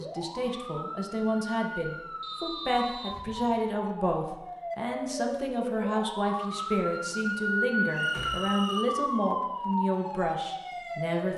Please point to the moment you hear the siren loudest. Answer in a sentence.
The loudest moment of the siren is at 8 seconds.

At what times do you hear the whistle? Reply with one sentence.
You can hear the whistle from 2.2 to 3.2 s and from 7.9 to 8.8 s.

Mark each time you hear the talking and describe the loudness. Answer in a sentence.
You can hear the talking from 0.0 to 11.3 s, at a steady volume.